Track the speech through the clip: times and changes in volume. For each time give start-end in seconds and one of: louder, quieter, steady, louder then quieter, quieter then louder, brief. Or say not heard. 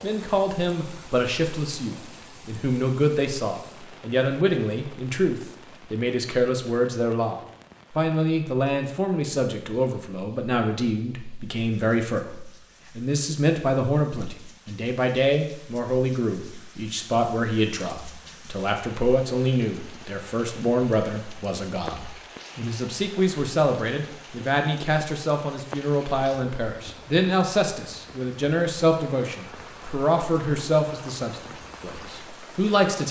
0.0-33.0 steady.